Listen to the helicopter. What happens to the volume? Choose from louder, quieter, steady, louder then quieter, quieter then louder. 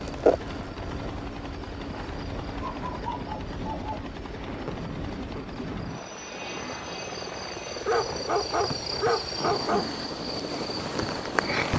steady.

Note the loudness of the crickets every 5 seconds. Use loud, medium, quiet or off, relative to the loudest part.
loud, medium, loud.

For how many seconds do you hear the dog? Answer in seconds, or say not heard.
3 s.